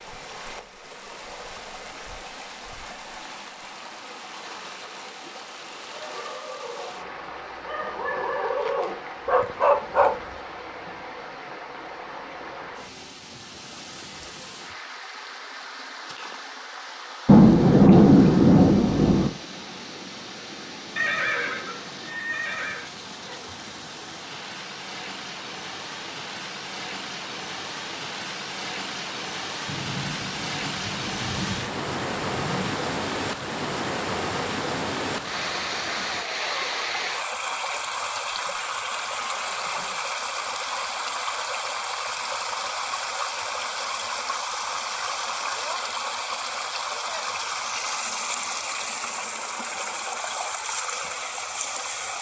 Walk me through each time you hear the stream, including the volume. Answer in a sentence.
The stream can be heard from 0.0 to 52.1 s, getting louder.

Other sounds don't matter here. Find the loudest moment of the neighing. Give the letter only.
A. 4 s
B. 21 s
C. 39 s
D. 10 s
B.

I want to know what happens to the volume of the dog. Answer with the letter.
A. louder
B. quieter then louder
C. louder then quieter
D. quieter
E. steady
A.